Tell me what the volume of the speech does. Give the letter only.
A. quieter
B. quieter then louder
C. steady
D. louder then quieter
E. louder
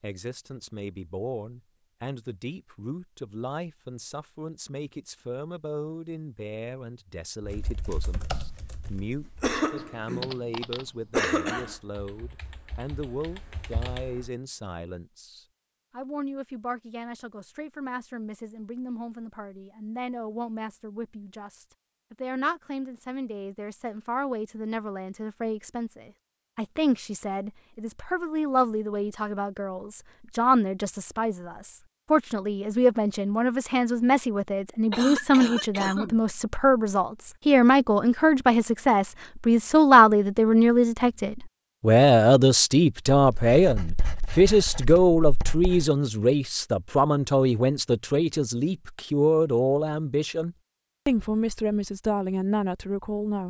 E.